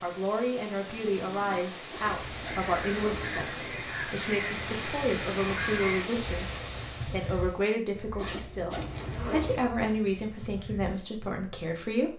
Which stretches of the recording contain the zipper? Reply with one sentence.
The zipper can be heard from 1.9 to 3.5 s and from 8.2 to 9.7 s.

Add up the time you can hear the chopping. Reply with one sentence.
The chopping can't be heard in this clip.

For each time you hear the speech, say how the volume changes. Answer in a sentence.
The speech can be heard from 0.0 to 12.1 s, at a steady volume.